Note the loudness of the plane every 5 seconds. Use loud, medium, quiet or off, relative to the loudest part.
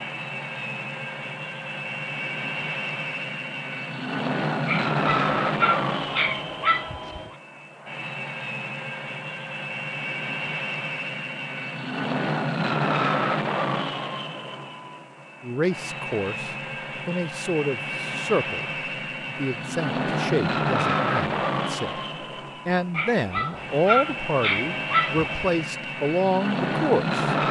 loud, loud, loud, medium, loud, loud.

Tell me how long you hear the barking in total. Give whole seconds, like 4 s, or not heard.
5 s.